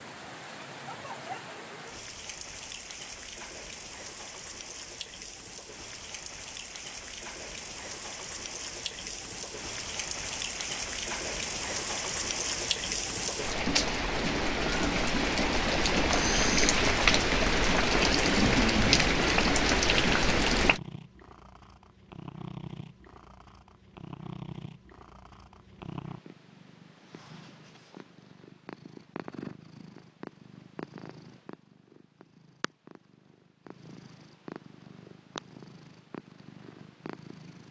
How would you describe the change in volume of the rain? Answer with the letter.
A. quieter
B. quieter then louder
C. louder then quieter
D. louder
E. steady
D.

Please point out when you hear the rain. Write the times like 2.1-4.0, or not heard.
0.0-20.8.